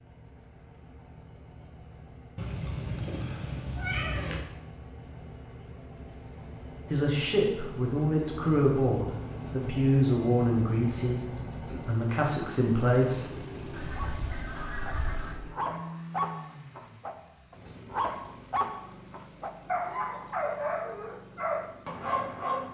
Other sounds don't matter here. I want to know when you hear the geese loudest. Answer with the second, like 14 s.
15 s.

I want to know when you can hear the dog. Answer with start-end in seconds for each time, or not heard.
13.9-22.6.